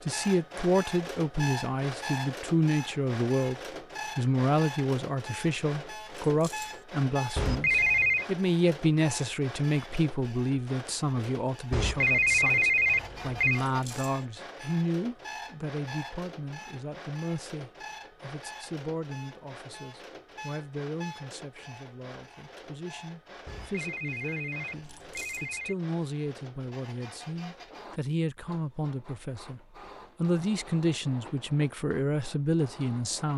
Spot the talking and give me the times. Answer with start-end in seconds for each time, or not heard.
0.0-33.3.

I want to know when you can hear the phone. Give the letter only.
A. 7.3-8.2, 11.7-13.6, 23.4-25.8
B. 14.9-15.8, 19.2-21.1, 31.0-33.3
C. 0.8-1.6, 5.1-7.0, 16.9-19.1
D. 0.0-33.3
A.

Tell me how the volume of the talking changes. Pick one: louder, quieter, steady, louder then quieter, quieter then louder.
quieter then louder.